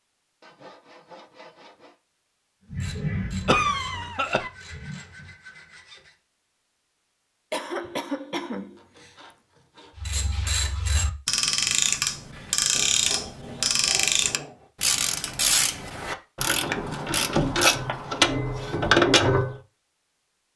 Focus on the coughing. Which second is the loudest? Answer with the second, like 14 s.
4 s.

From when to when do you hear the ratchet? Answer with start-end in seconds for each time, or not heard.
2.7-5.3, 9.9-19.6.